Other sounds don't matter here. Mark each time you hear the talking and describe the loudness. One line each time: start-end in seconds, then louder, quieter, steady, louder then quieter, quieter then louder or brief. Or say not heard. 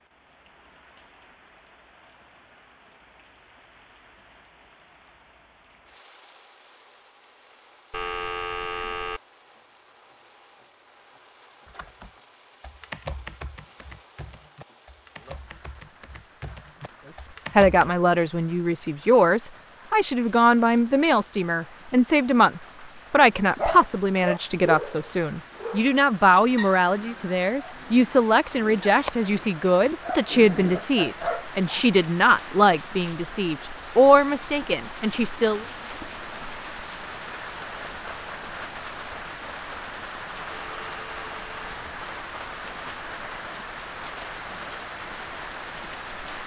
17.1-35.6 steady.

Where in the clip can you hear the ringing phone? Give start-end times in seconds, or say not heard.
7.9-9.2, 40.5-41.7.